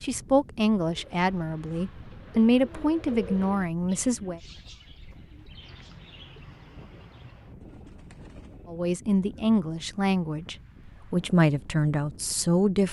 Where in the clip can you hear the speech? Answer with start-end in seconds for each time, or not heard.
0.0-4.4, 8.7-12.8.